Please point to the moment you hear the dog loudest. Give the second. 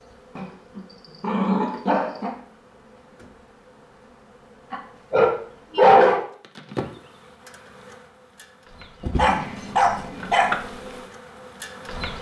6 s.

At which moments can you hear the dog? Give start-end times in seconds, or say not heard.
0.3-2.4, 4.7-6.2, 9.2-10.6.